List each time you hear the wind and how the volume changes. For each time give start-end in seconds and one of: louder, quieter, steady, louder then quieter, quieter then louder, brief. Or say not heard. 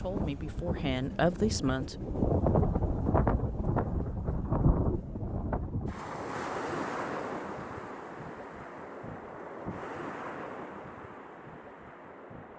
0.0-12.5 quieter.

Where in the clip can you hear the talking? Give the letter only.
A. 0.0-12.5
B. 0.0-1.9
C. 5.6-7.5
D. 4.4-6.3
B.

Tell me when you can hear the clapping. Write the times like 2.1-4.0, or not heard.
not heard.